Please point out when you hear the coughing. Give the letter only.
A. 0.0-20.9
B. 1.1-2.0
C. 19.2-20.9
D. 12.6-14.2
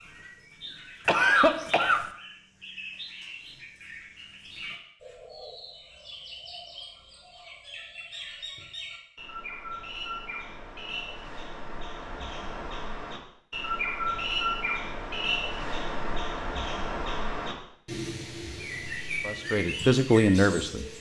B.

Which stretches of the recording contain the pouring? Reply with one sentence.
You can't hear the pouring here.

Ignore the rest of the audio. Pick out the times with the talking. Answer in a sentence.
You can hear the talking from 19.2 to 20.9 s.